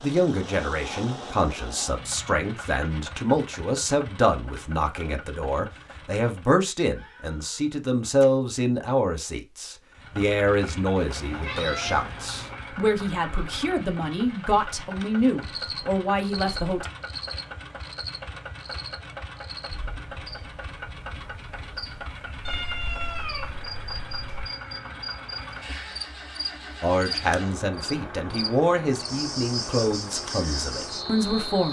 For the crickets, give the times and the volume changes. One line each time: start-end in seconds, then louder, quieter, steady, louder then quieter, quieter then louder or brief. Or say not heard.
15.4-31.6 quieter then louder.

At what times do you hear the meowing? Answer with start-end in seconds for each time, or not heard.
7.0-8.2, 10.9-12.7, 22.4-24.4.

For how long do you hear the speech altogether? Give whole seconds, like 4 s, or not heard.
22 s.